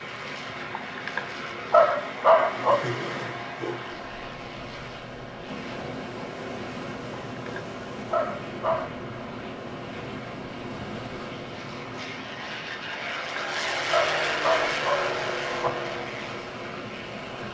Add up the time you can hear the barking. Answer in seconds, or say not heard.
6 s.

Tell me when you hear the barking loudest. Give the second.
2 s.